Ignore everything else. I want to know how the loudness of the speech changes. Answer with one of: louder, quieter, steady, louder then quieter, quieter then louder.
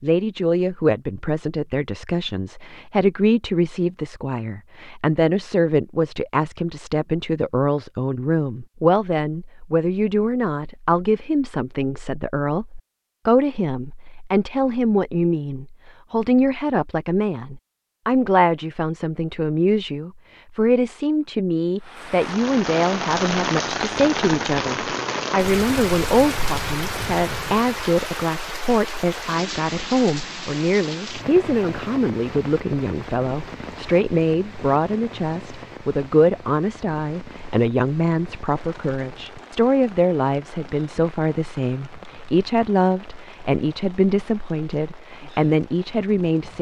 steady.